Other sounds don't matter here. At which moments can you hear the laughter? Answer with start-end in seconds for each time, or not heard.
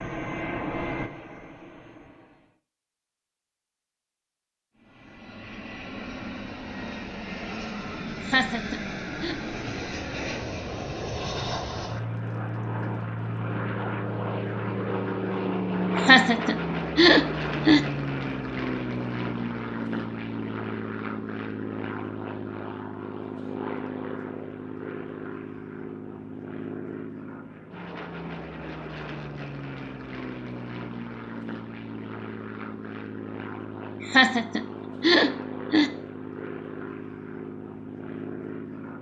8.2-9.3, 15.9-17.9, 34.0-35.9.